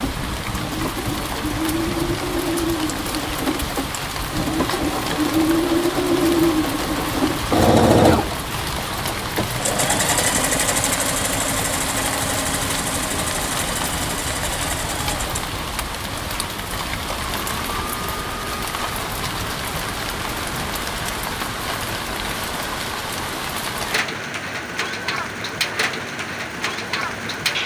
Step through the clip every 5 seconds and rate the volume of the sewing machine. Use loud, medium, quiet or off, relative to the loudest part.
medium, loud, medium, quiet, quiet, quiet.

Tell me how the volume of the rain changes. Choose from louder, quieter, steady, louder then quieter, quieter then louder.
steady.